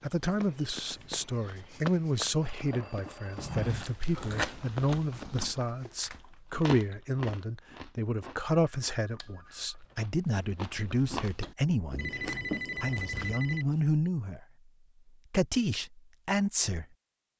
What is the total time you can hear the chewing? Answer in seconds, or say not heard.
10 s.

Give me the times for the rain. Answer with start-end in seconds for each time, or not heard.
not heard.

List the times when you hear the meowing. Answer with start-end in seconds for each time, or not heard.
not heard.